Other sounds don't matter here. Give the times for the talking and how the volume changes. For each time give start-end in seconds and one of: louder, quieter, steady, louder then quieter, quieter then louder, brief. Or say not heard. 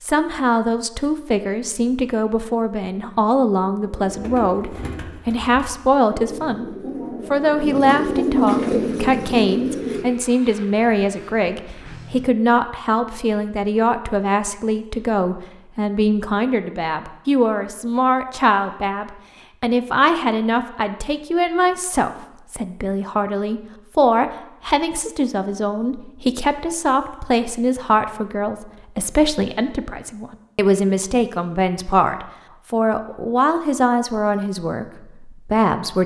0.0-36.0 steady.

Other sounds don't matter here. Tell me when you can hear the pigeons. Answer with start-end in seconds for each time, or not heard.
3.9-10.1.